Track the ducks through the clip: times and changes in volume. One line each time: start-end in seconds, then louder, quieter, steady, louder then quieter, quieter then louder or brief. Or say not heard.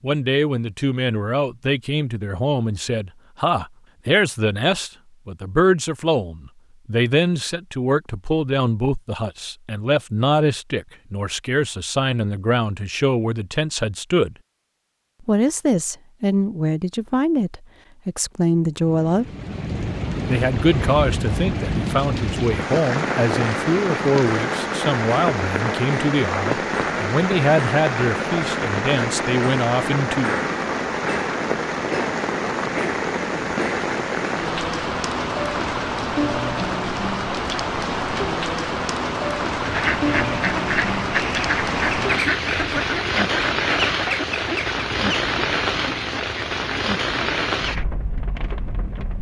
39.6-47.9 quieter.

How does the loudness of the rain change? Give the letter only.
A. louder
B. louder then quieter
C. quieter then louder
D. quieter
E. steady
E.